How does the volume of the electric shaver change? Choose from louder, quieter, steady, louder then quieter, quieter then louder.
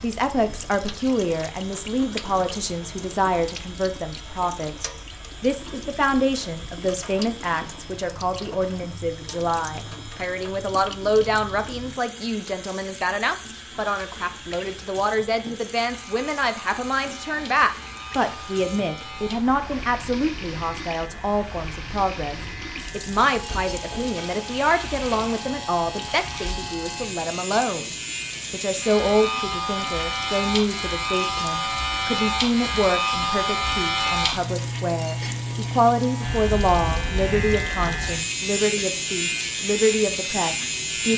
louder.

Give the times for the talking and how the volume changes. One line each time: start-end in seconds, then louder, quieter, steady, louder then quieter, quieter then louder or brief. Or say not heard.
0.0-41.1 steady.